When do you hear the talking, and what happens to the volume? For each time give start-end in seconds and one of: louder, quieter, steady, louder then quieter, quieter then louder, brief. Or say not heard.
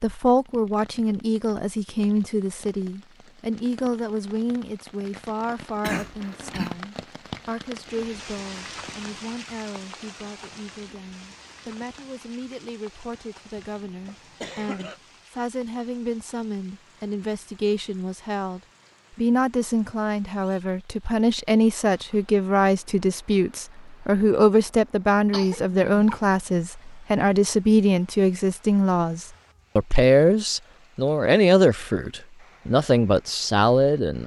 0.0-34.2 quieter then louder.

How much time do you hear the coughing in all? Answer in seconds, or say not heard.
3 s.